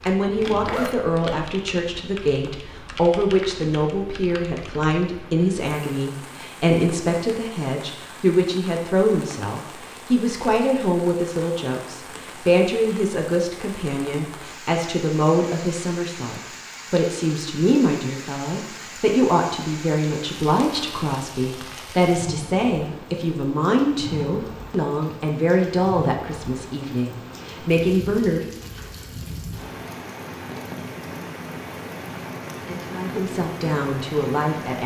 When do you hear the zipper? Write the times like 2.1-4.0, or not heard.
0.1-1.1.